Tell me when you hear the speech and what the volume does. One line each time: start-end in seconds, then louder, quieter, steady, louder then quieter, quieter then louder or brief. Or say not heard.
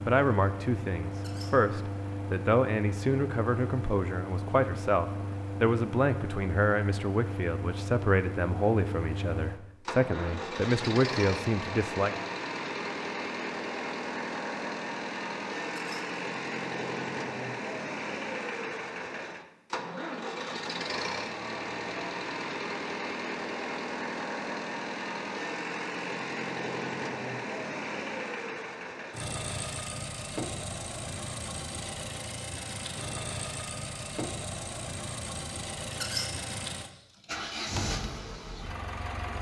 0.0-12.2 steady.